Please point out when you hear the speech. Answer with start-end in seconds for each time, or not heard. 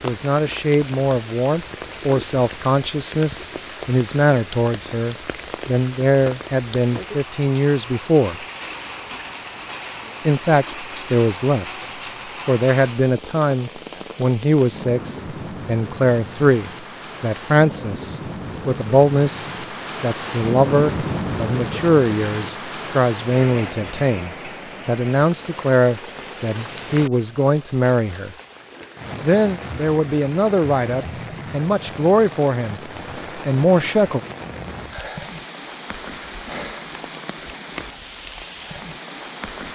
0.0-8.3, 10.2-28.4, 29.2-34.2.